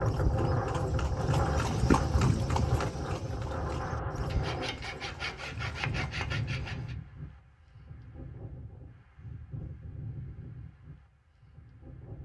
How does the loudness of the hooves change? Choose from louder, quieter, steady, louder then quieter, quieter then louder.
louder then quieter.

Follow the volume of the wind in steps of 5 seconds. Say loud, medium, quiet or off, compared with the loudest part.
loud, medium, quiet.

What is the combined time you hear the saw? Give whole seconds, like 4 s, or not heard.
3 s.